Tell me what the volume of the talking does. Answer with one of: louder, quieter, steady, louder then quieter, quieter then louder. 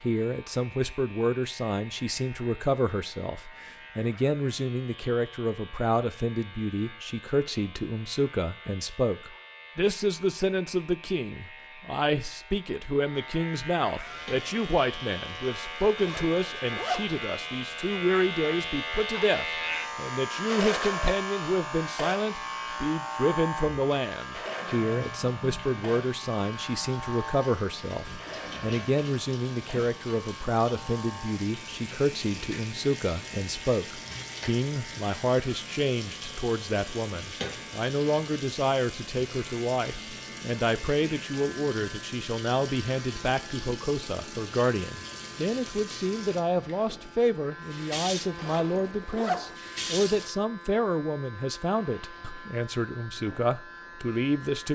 steady.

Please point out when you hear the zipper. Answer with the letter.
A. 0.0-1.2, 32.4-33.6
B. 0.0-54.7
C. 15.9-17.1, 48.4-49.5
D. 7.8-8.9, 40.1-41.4
C.